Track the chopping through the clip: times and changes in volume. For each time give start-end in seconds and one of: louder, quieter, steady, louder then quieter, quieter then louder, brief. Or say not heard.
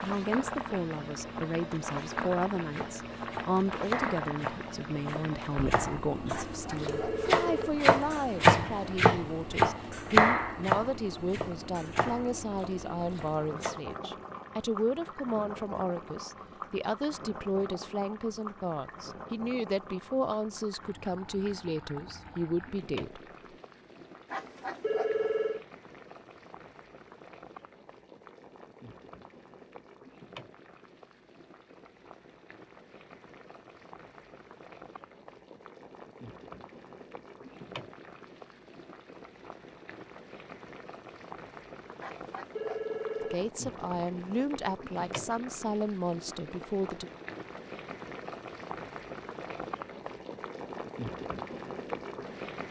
2.7-13.8 louder then quieter.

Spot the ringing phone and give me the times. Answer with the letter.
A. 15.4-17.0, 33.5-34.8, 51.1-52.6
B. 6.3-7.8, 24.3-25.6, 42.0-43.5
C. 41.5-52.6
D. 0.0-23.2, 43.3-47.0
B.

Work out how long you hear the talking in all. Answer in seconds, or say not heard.
27 s.